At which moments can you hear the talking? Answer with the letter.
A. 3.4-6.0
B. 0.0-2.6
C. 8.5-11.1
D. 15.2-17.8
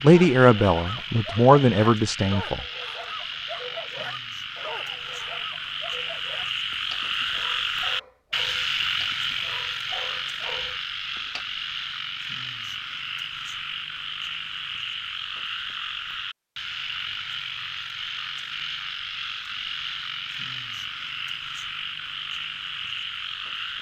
B.